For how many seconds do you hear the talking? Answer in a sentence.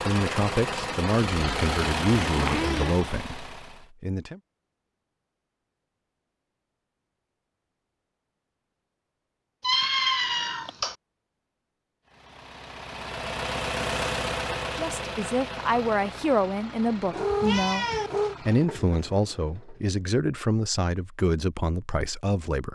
You can hear the talking for 12 seconds altogether.